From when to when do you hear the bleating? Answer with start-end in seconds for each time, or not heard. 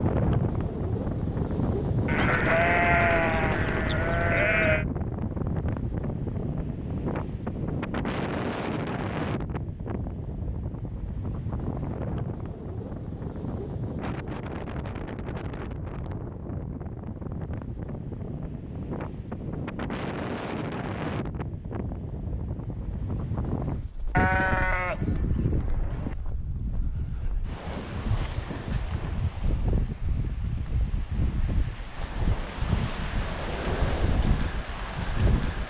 2.0-4.8, 24.1-26.1.